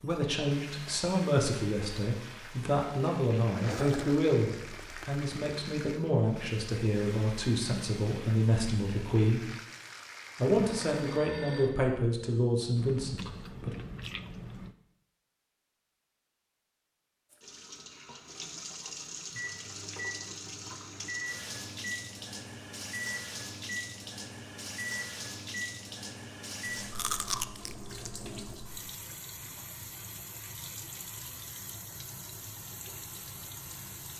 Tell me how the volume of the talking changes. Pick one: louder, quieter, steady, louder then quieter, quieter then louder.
steady.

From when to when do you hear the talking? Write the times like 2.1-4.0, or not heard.
0.0-9.4, 10.3-13.8.